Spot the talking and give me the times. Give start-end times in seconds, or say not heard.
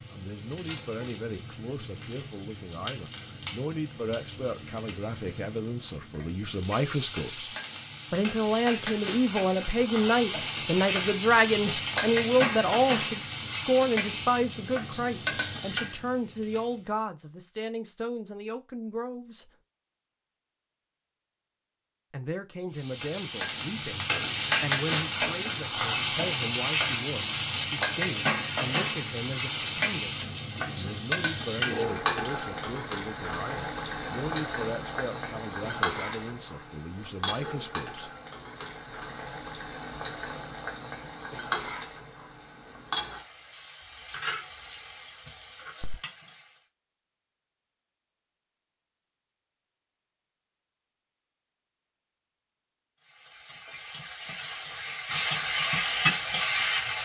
0.1-19.5, 22.1-38.1.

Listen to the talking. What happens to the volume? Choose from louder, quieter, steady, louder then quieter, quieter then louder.
louder then quieter.